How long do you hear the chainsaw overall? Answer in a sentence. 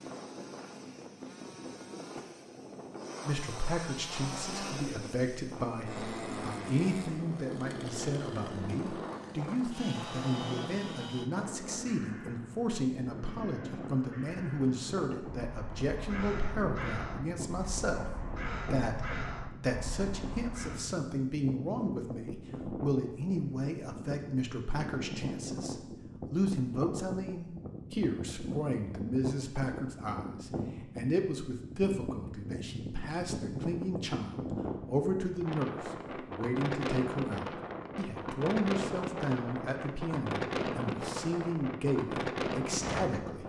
The chainsaw can be heard for 11 seconds in total.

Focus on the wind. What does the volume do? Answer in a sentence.
The loudness of the wind goes up.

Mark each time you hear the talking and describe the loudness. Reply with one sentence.
You can hear the talking from 3.2 to 43.4 s, at a steady volume.